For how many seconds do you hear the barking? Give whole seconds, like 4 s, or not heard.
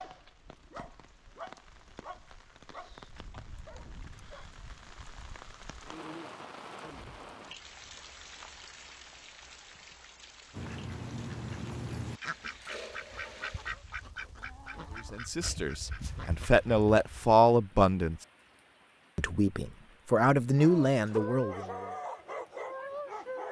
7 s.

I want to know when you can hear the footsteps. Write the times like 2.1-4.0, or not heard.
not heard.